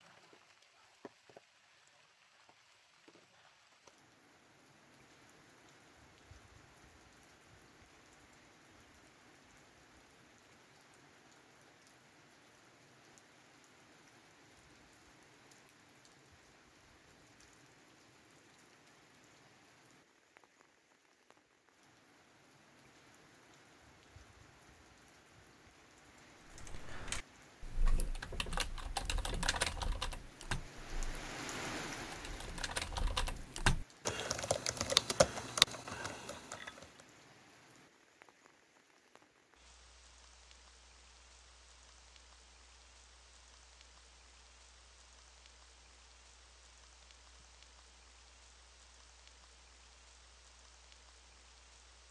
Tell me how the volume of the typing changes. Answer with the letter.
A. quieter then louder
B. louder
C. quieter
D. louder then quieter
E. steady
B.